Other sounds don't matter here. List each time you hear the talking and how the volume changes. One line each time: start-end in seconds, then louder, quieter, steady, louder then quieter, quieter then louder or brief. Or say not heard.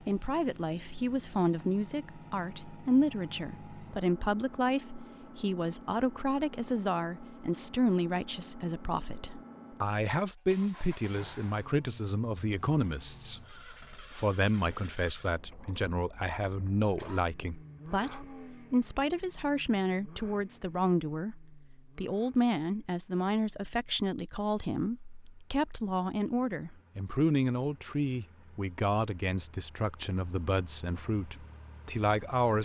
0.1-32.6 steady.